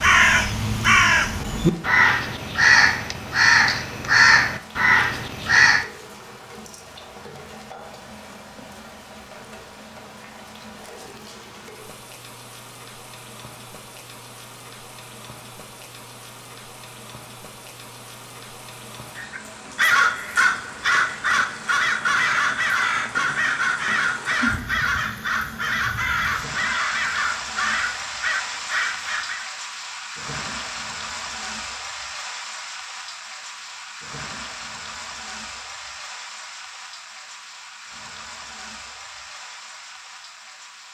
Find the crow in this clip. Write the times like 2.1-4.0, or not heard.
0.0-5.9, 19.1-29.4.